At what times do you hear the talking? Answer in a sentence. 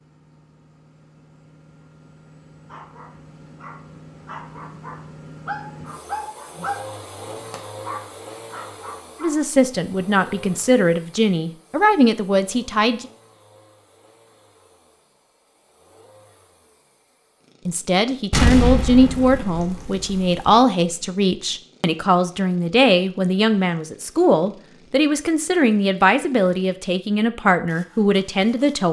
The talking can be heard from 9.2 to 13.1 s and from 17.6 to 28.8 s.